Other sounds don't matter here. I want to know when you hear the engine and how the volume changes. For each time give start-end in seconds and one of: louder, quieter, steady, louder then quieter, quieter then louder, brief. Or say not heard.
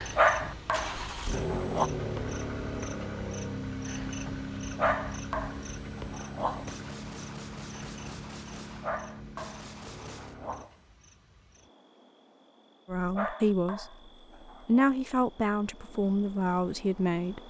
0.0-10.7 quieter.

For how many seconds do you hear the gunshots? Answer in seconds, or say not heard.
4 s.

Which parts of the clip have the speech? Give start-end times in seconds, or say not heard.
12.8-13.8, 14.7-17.4.